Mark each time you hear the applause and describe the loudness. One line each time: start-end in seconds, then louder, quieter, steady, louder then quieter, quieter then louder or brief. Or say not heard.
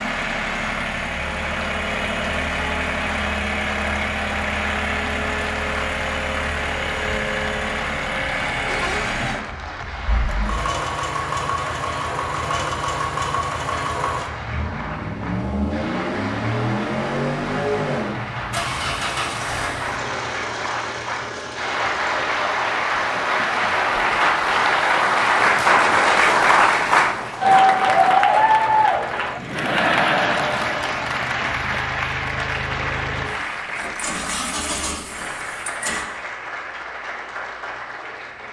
0.0-38.4 louder then quieter.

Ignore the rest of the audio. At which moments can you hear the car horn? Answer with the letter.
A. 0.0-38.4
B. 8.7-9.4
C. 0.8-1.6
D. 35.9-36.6
B.